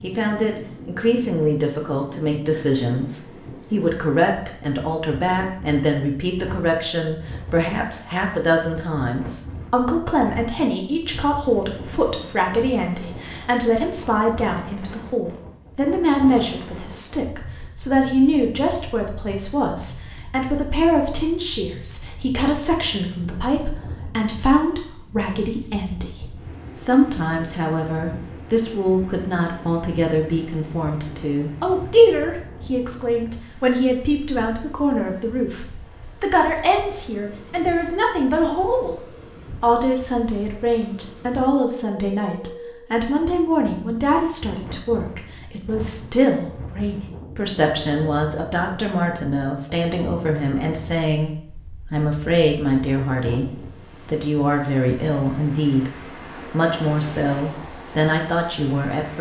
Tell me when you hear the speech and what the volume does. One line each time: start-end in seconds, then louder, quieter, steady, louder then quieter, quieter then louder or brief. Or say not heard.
0.0-39.0 steady
39.6-55.9 steady
56.5-59.1 brief.